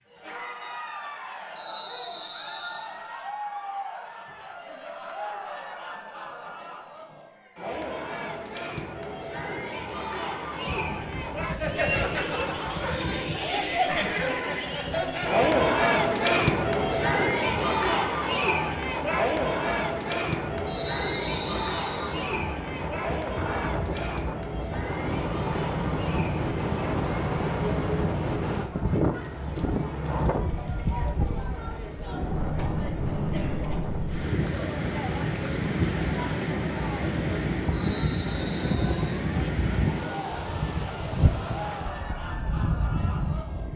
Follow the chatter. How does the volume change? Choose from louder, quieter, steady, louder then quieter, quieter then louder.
louder then quieter.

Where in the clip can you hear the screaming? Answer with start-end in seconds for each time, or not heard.
not heard.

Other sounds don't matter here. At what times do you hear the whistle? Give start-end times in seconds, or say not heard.
1.6-2.9, 20.6-22.1, 37.7-39.2.